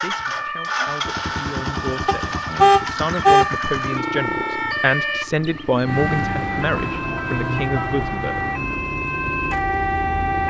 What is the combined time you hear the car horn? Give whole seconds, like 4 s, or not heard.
3 s.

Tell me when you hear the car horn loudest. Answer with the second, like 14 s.
3 s.